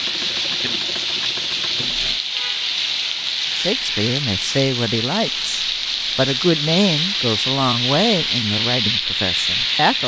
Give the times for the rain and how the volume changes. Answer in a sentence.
The rain can be heard from 0.0 to 10.0 s, at a steady volume.